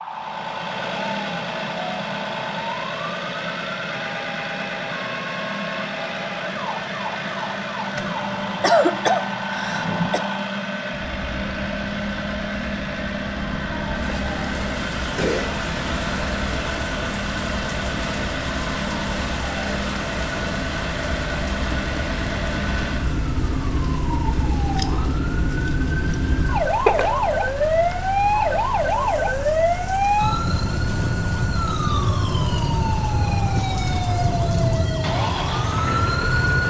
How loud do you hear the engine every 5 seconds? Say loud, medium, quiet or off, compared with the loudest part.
loud, loud, loud, loud, loud, medium, medium, loud.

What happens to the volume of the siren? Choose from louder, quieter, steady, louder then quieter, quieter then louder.
louder.